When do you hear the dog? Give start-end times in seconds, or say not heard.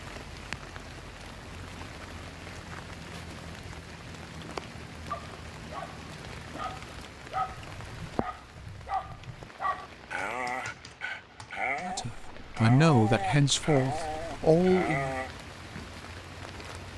5.1-15.3.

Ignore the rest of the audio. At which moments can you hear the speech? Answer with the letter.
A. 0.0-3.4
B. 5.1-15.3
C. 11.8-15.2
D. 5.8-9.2
C.